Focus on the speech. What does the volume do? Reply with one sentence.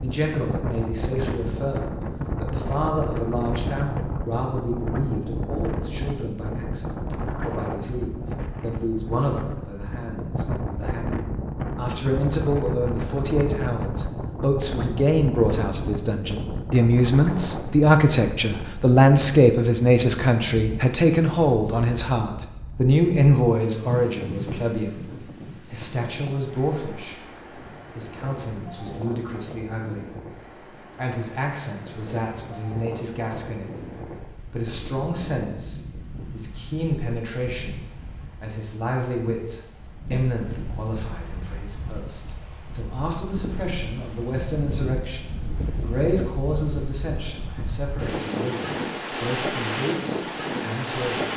The loudness of the speech goes up, then down.